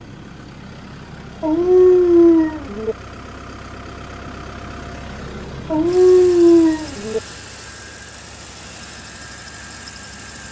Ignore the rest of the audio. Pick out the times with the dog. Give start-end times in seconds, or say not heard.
1.4-3.0, 5.7-7.2.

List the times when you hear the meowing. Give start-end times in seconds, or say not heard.
not heard.